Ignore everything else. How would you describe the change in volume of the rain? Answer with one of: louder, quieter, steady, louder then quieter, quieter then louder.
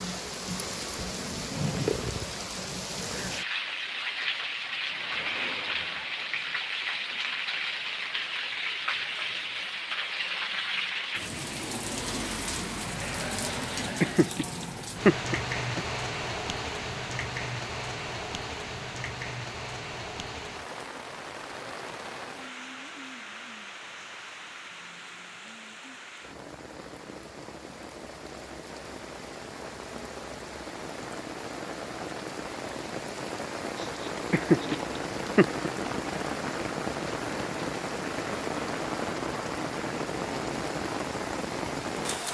quieter then louder.